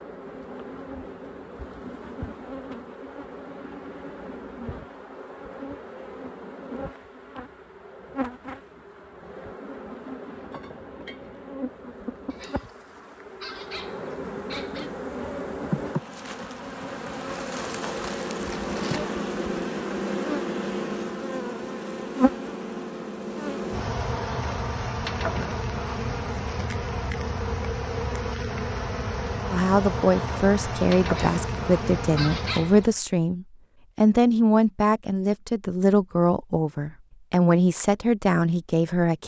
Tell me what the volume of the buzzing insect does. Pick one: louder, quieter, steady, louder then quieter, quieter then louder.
louder.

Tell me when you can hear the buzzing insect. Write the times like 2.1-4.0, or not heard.
0.0-33.0.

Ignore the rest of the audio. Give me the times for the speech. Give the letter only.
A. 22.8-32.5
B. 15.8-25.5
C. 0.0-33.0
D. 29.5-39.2
D.